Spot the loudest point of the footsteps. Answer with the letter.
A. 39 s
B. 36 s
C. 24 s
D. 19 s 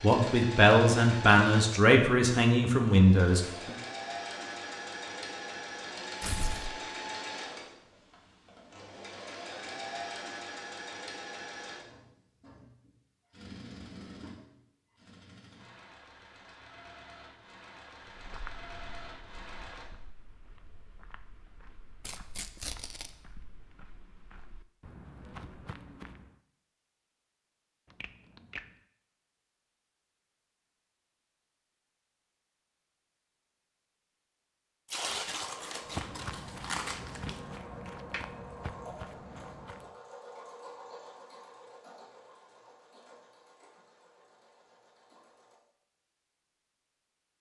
B.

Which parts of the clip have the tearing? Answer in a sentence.
The tearing can be heard from 6.2 to 6.8 s, from 22.0 to 23.1 s and from 34.9 to 37.4 s.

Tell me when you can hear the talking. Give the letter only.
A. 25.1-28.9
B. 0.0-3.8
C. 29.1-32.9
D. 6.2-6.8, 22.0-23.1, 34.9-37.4
B.